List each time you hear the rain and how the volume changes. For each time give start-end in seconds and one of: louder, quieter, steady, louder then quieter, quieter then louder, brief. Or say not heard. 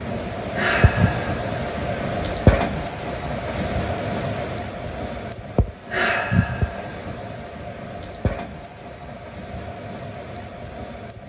0.0-11.2 quieter.